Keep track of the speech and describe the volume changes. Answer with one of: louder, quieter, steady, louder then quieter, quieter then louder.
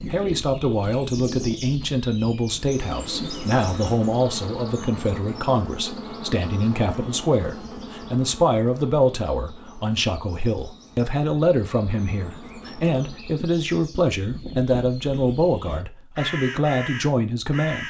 steady.